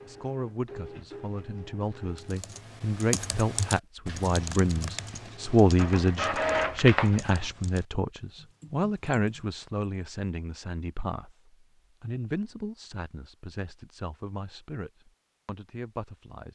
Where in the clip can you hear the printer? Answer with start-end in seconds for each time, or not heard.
0.0-2.5, 5.3-7.5.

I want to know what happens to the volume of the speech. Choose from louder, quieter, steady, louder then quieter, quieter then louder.
louder then quieter.